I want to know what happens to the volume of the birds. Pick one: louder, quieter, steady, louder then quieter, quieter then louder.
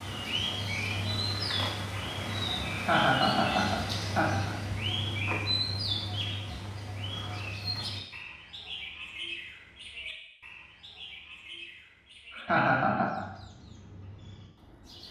quieter.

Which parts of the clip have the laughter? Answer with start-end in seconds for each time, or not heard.
2.7-4.5, 12.3-13.2.